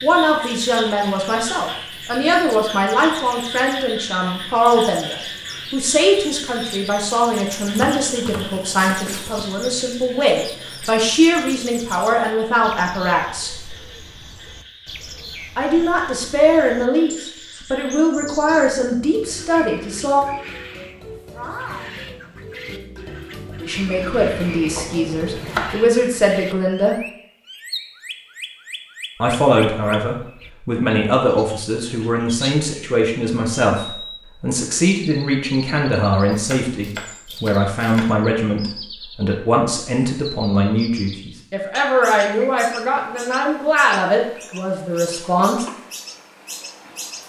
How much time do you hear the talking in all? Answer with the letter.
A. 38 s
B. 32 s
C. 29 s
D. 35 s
A.